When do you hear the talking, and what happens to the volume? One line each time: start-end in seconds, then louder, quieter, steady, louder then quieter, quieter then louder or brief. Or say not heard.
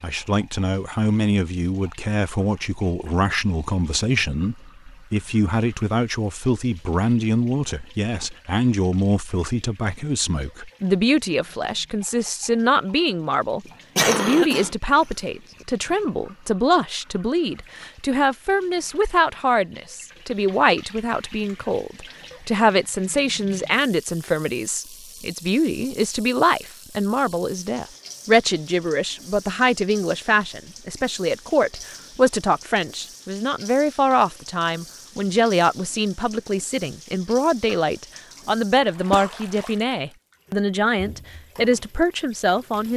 0.0-42.9 steady.